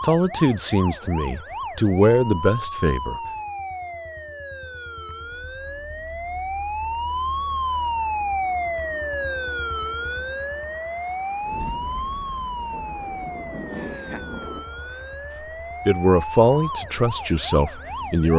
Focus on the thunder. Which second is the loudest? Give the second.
14 s.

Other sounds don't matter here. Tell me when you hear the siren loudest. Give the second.
8 s.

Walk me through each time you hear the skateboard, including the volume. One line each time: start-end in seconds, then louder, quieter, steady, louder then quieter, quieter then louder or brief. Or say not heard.
not heard.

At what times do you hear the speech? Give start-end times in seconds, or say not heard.
0.0-3.2, 15.8-18.3.